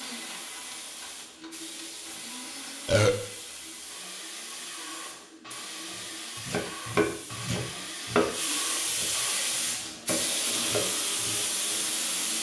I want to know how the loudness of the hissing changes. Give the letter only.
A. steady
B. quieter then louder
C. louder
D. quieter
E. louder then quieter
C.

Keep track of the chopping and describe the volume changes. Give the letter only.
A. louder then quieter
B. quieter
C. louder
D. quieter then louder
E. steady
D.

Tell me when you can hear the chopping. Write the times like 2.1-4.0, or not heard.
6.0-11.9.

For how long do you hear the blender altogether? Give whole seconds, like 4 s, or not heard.
12 s.